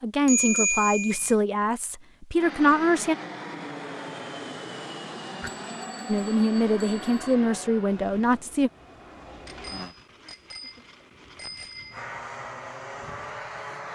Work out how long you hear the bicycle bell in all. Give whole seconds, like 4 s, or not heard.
6 s.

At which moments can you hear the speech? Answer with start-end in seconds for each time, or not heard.
0.0-3.1, 6.0-8.7.